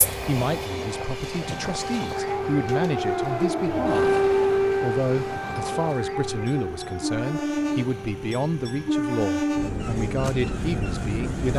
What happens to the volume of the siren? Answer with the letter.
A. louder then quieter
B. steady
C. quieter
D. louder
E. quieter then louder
A.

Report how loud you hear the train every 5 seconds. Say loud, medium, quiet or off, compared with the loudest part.
medium, loud, loud.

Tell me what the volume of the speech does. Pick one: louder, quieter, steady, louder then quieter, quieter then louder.
steady.